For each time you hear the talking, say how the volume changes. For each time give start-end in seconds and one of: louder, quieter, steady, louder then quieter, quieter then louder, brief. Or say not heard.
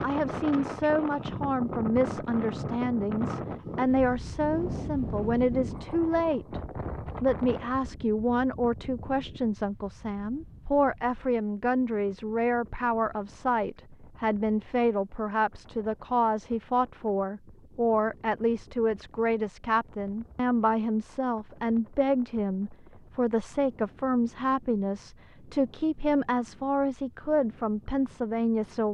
0.0-28.8 steady.